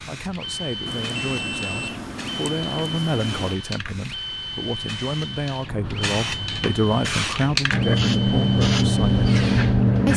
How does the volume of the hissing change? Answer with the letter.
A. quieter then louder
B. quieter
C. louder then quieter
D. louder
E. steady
D.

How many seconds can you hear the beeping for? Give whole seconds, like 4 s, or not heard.
3 s.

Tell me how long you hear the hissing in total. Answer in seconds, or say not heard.
10 s.